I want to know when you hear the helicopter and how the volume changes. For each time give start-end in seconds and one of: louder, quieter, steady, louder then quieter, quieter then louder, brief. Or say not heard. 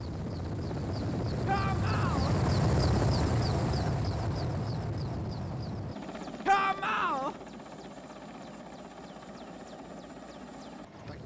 0.0-11.2 quieter.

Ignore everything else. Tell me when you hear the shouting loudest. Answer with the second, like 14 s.
7 s.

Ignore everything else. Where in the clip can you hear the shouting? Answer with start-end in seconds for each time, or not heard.
1.4-2.4, 6.5-7.3.